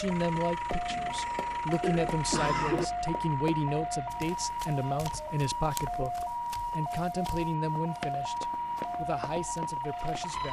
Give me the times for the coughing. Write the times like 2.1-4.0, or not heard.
0.9-2.9.